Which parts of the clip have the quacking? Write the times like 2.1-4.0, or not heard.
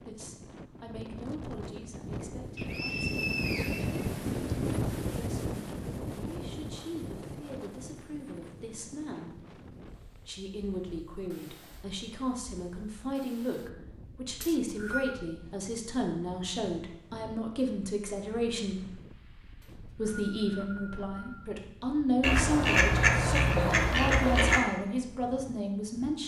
22.2-24.6.